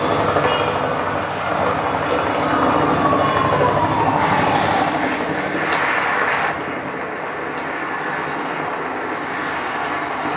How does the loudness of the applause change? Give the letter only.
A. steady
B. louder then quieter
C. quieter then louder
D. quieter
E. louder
B.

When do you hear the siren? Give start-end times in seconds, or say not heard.
0.0-4.8.